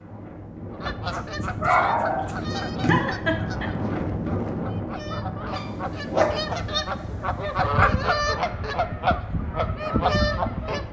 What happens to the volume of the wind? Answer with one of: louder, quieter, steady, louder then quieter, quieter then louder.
louder then quieter.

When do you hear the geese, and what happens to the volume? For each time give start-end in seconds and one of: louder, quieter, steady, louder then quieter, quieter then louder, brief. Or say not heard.
0.7-10.8 quieter then louder.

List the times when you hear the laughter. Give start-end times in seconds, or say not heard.
2.9-3.7.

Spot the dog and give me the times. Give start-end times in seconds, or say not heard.
1.1-3.0, 5.5-7.8.